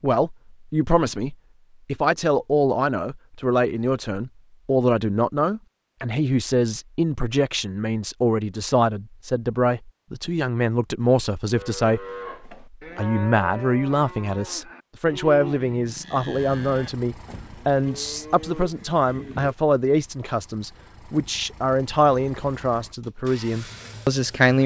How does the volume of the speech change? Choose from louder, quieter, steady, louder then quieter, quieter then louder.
steady.